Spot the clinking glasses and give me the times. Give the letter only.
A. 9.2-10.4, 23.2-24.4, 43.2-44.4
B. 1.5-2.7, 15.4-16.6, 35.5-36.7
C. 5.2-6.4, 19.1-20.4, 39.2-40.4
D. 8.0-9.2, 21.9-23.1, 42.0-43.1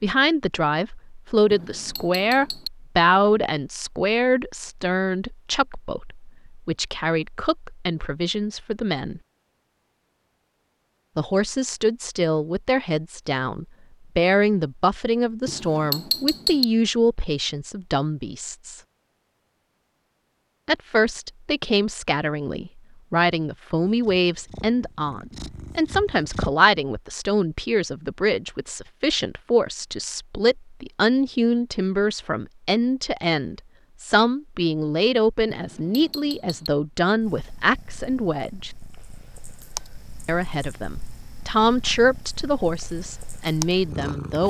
B.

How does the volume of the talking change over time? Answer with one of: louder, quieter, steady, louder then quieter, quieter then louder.
steady.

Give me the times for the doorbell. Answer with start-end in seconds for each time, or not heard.
not heard.